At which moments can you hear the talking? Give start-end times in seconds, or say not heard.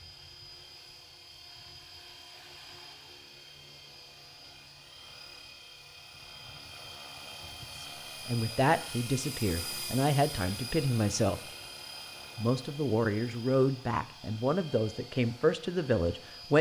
7.8-11.4, 12.3-16.5.